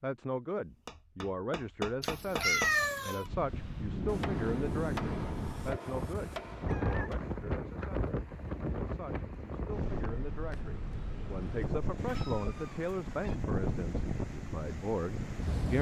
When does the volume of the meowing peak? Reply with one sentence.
The loudest moment of the meowing is at 3 seconds.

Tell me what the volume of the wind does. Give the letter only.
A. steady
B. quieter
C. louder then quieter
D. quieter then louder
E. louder
A.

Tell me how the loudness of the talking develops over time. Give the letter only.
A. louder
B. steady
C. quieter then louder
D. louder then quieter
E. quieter
C.